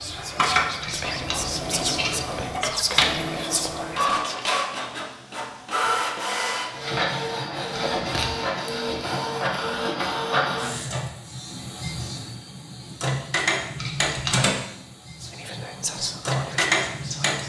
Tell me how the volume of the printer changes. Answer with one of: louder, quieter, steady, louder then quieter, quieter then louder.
steady.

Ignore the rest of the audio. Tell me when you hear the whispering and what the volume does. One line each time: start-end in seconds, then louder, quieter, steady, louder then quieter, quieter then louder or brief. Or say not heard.
0.0-4.5 steady
15.2-17.4 brief.